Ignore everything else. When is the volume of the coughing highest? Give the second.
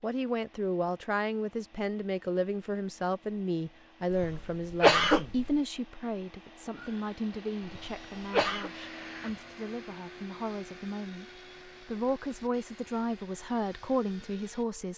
5 s.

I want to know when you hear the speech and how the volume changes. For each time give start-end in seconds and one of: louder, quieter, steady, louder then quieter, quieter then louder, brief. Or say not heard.
0.0-14.9 quieter then louder.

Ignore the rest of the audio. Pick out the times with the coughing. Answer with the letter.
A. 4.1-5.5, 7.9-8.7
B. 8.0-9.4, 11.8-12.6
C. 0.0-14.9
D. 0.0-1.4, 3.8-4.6
A.